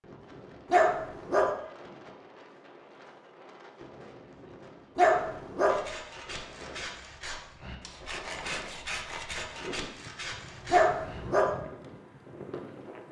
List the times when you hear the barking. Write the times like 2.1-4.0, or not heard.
0.7-1.5, 5.0-5.8, 10.7-11.5.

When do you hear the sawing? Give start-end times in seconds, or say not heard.
5.7-11.2.